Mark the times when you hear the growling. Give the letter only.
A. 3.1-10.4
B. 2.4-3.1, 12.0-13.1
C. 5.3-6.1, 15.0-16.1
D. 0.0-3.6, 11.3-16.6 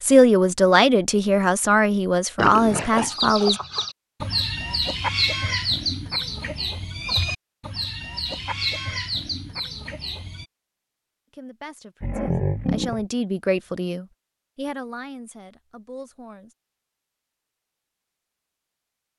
B.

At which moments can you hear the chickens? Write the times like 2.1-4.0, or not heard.
3.1-10.4.